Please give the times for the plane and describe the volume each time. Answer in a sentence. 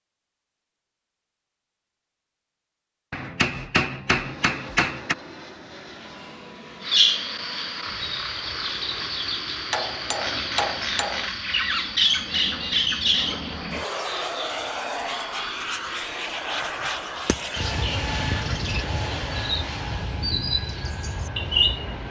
You can hear the plane from 4.0 to 22.0 s, getting louder.